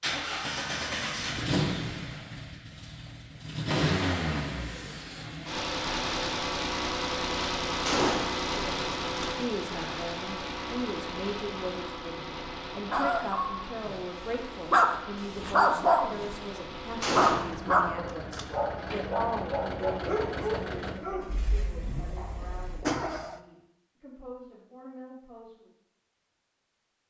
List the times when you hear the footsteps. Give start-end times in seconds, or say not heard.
not heard.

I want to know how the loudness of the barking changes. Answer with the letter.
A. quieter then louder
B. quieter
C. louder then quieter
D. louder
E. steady
B.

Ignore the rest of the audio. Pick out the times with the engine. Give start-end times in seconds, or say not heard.
0.0-23.4.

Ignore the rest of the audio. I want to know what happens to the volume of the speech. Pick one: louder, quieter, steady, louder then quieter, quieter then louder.
quieter.